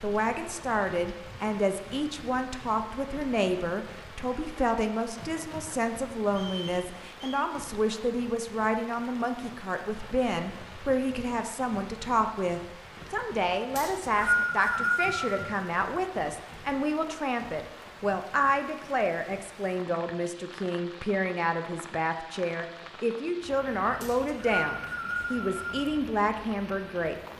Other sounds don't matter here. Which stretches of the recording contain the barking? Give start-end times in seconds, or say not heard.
not heard.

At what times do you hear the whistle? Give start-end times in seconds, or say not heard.
6.2-7.3, 13.8-15.4, 24.0-25.9.